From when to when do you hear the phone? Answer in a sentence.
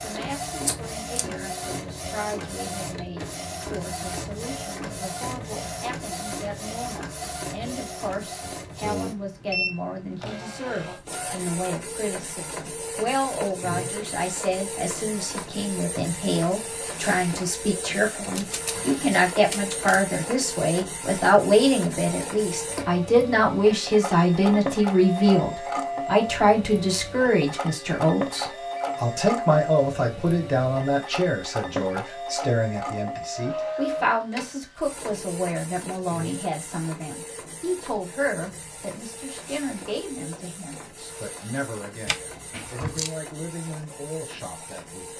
The phone can't be heard in this clip.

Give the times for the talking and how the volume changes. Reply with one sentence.
The talking can be heard from 0.0 to 45.1 s, getting louder then quieter.